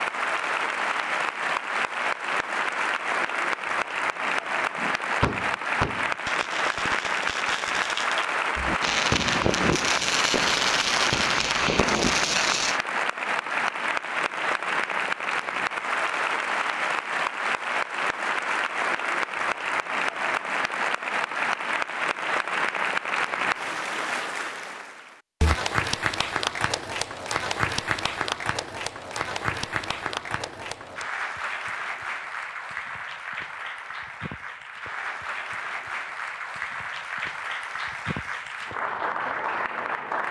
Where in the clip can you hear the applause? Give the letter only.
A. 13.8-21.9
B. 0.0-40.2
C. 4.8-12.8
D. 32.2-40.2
B.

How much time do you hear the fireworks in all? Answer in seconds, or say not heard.
8 s.